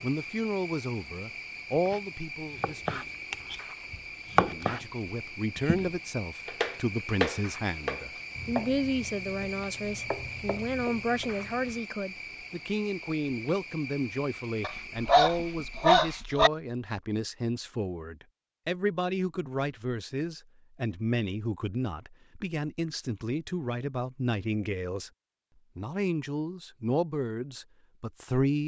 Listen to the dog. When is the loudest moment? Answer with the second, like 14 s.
16 s.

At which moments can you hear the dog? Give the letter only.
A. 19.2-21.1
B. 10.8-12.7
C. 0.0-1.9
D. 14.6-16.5
D.